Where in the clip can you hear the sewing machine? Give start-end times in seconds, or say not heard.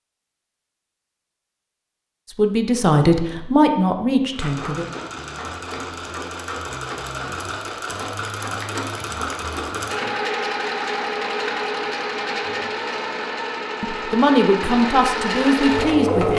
4.3-16.3.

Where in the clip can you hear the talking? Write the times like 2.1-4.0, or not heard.
2.4-4.8, 13.8-16.3.